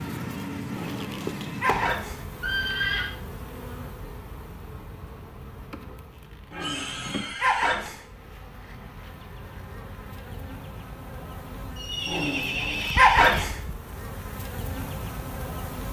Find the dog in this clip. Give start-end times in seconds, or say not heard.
0.7-2.2, 6.5-8.0, 12.1-13.6.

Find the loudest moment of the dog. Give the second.
13 s.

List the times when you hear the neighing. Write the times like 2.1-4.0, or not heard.
1.6-3.1, 6.5-7.8, 11.8-13.4.